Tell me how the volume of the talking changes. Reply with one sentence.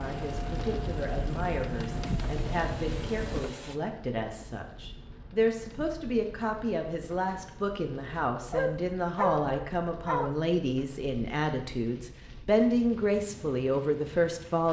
The volume of the talking goes up.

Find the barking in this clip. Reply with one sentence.
The barking can be heard from 8.5 to 10.3 s.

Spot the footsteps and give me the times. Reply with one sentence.
The footsteps can't be heard in this clip.